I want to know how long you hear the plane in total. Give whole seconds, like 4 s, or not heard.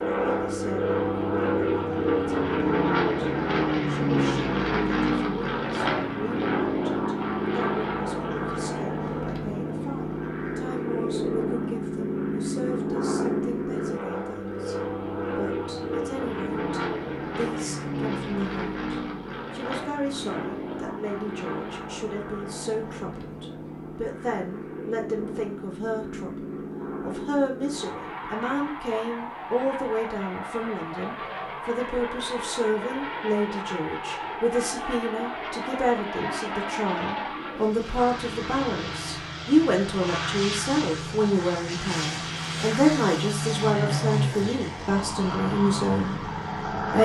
47 s.